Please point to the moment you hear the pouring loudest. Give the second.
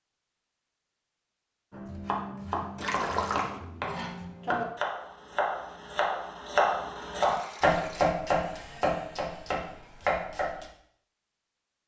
3 s.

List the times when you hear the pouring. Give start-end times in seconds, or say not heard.
2.8-3.5, 7.2-8.2.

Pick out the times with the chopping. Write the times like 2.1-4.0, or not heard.
1.7-10.7.